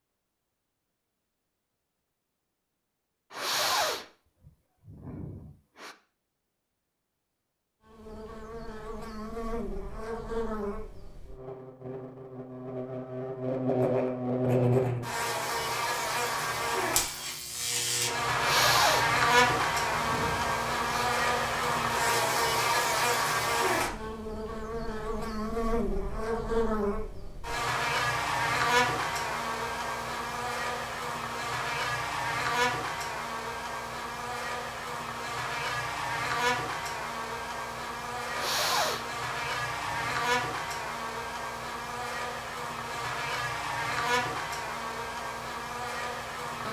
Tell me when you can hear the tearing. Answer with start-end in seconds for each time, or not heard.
not heard.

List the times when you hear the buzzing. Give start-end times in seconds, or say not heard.
7.8-46.6.